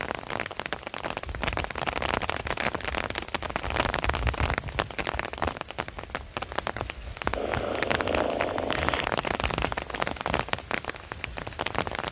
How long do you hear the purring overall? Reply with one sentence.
The purring can be heard for 2 seconds in total.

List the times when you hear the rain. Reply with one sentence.
You can hear the rain from 0.0 to 12.0 s.